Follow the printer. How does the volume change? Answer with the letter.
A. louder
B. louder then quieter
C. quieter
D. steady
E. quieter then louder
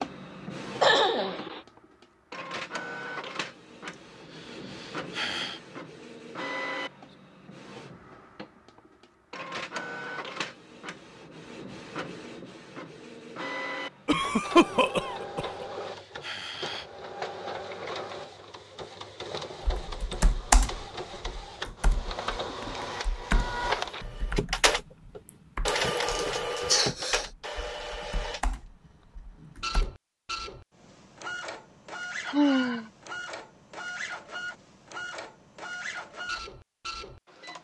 B.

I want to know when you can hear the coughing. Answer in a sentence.
You can hear the coughing from 0.8 to 1.6 s, from 14.1 to 15.7 s and from 26.1 to 27.2 s.